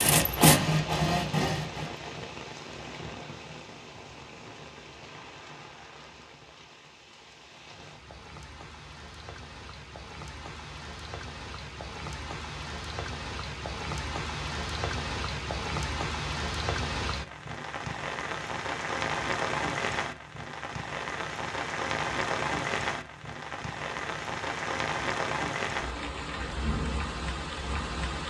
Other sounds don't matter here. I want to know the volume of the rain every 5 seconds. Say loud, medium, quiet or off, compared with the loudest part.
medium, quiet, medium, loud, loud, loud.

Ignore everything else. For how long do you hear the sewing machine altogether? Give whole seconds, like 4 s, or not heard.
2 s.